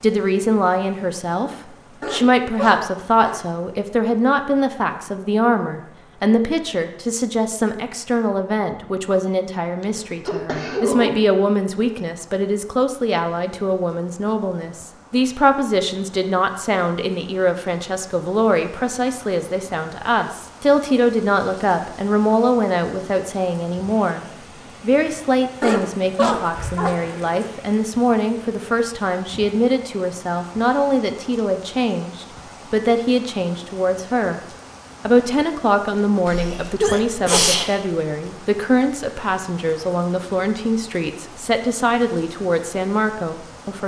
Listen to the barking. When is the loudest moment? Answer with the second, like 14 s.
26 s.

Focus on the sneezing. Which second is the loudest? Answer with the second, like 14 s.
37 s.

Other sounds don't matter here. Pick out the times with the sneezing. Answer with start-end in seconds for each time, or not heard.
9.8-11.1, 26.6-27.4, 36.2-37.7.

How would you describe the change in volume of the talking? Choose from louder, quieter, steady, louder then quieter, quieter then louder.
steady.